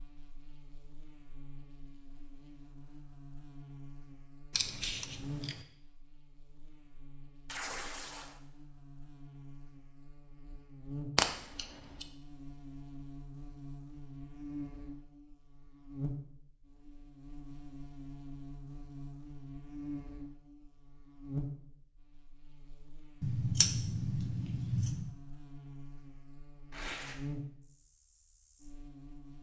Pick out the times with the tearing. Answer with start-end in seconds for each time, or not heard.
7.5-8.3, 26.7-27.1.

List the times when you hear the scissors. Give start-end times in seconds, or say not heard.
4.5-5.7, 11.2-12.1, 23.2-25.1.